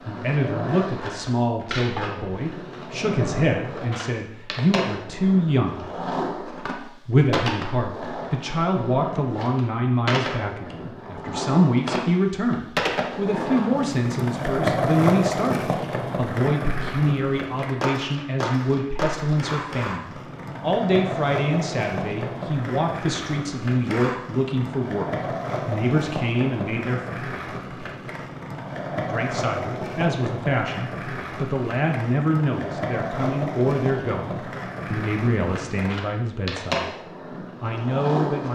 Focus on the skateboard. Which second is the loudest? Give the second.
15 s.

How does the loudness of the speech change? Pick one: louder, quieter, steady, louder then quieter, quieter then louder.
steady.